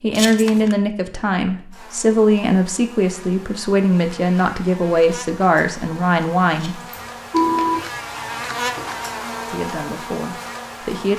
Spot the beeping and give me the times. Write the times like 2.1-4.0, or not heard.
6.9-7.9.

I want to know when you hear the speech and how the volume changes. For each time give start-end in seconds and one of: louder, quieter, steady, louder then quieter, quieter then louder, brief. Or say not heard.
0.0-6.8 steady
9.4-11.1 brief.